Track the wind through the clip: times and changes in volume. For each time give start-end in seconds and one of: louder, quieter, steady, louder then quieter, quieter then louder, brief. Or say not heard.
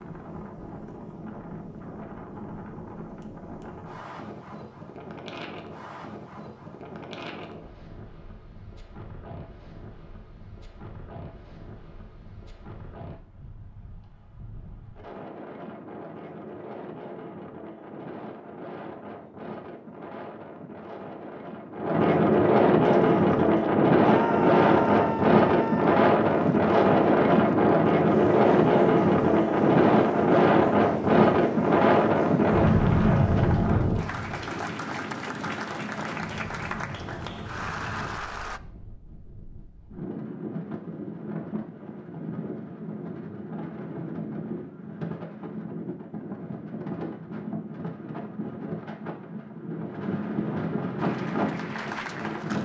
0.0-52.6 louder then quieter.